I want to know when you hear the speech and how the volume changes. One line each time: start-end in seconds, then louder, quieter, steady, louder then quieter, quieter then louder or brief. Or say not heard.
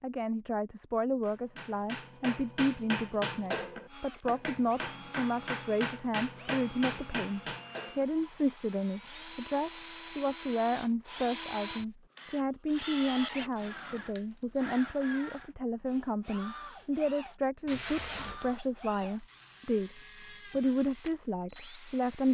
0.0-22.2 steady.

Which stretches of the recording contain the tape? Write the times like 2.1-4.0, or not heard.
17.6-18.6.